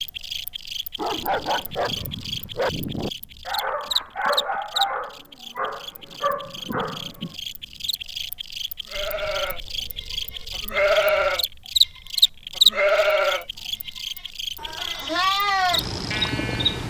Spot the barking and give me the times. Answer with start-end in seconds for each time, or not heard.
0.9-7.3.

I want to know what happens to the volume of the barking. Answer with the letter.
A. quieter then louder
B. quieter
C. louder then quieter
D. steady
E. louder
D.